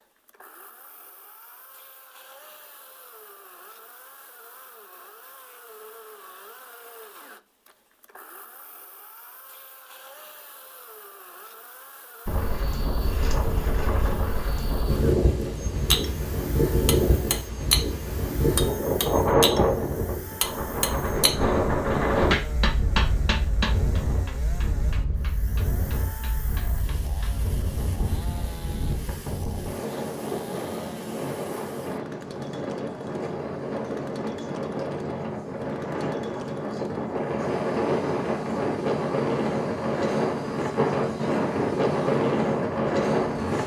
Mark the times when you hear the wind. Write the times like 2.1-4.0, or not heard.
12.2-43.6.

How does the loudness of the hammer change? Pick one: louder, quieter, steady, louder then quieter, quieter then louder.
quieter.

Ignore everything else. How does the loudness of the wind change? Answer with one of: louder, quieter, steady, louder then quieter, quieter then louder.
quieter then louder.